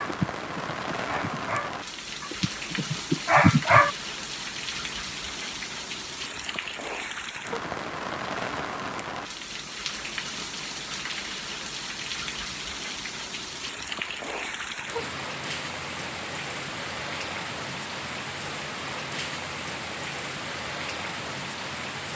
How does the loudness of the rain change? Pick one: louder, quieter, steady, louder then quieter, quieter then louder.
steady.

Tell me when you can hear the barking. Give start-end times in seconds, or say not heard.
0.0-4.0.